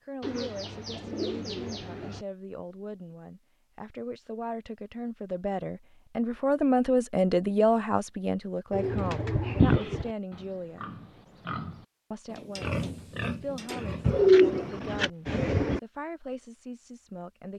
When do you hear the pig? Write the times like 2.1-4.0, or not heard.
9.4-15.0.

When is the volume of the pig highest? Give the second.
13 s.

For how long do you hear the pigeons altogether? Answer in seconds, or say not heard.
5 s.